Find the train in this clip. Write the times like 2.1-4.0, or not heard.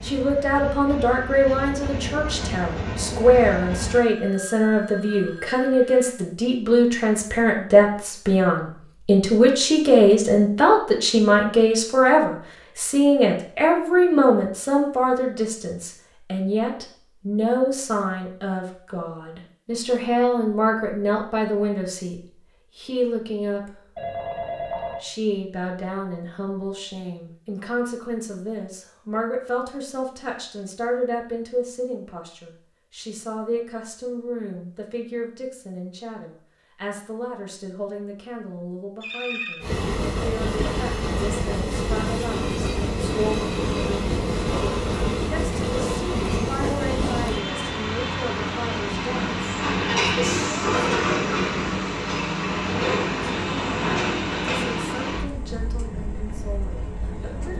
0.0-4.0, 39.6-57.5.